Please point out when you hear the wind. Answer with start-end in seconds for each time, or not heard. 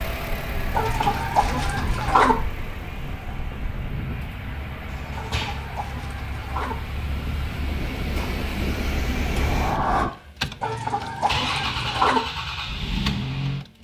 0.0-10.1.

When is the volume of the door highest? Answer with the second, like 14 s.
10 s.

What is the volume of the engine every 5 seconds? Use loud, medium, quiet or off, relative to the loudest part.
medium, medium, loud.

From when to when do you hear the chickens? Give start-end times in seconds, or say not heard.
0.8-2.4, 5.2-6.8, 10.6-12.2.